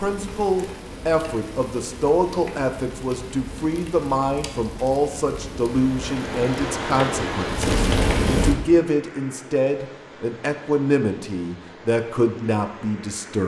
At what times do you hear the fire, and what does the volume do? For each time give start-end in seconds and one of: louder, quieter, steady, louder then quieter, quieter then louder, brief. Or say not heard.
0.0-8.6 louder.